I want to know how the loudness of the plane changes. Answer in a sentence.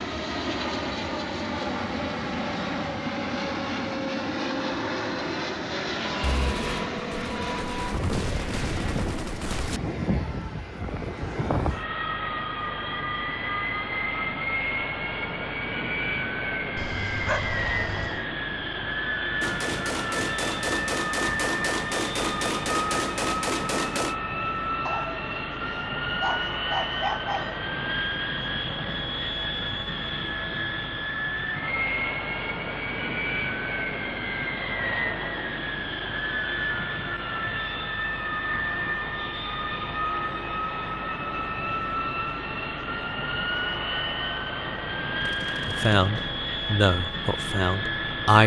The loudness of the plane stays about the same.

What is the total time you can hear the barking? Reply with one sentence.
You can hear the barking for 4 seconds altogether.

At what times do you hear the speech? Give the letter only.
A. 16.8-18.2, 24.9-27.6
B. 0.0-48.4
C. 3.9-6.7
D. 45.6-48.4
D.